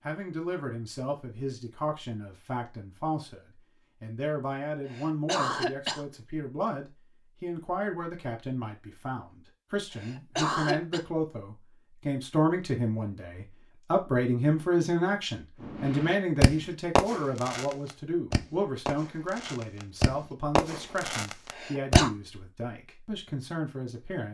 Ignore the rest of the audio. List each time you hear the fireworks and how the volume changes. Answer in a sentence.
The fireworks can be heard from 15.7 to 22.0 s, getting quieter then louder.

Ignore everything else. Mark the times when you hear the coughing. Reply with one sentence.
You can hear the coughing from 4.8 to 6.0 s, from 9.9 to 11.0 s and from 21.5 to 22.1 s.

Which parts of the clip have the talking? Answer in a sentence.
The talking can be heard from 0.1 to 24.2 s.